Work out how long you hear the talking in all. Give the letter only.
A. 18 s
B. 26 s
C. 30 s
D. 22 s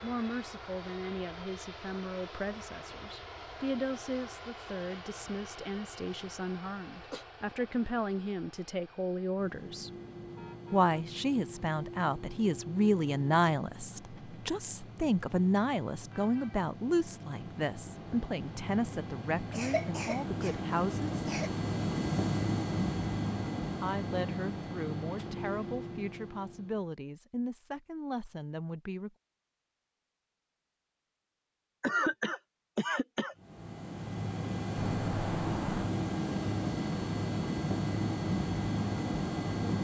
B.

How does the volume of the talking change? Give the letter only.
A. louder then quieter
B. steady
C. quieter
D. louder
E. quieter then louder
A.